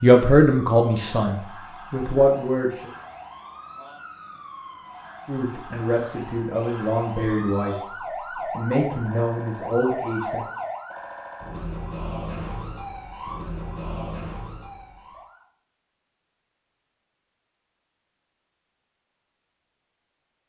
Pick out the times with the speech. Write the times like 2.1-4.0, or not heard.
0.0-2.9, 5.2-7.8, 8.6-10.4.